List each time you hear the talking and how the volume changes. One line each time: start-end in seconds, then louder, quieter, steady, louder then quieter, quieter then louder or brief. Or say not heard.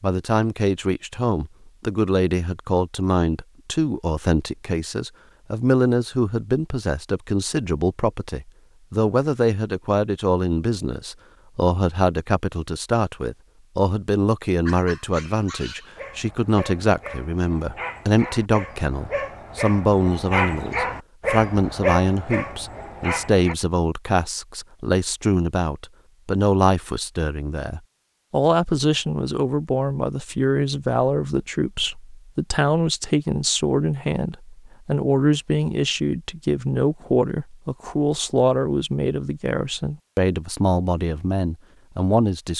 0.0-42.5 steady.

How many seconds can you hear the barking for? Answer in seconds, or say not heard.
9 s.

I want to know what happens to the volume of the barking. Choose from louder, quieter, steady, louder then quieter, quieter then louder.
louder.